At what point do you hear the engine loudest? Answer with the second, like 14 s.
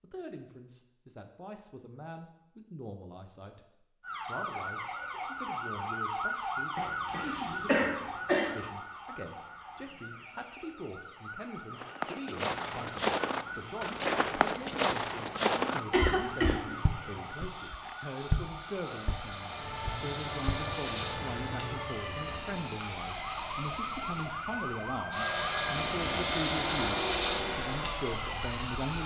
27 s.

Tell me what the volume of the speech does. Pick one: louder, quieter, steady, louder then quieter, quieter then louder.
louder.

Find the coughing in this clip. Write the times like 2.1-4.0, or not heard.
6.8-8.6, 15.9-16.7.